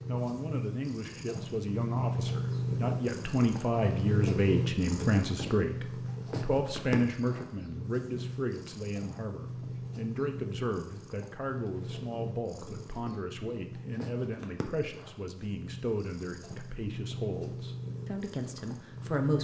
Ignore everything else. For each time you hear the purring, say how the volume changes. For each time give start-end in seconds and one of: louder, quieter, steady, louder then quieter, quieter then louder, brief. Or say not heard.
0.0-19.3 quieter.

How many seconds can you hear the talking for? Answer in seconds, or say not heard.
19 s.